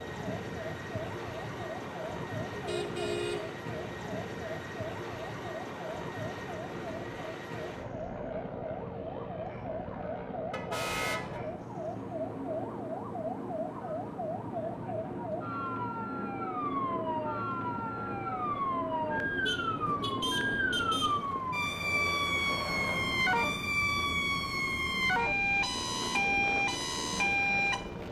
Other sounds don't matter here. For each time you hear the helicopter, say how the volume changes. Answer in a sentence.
You can hear the helicopter from 0.0 to 28.0 s, at a steady volume.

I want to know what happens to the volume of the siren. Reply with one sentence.
The volume of the siren goes up.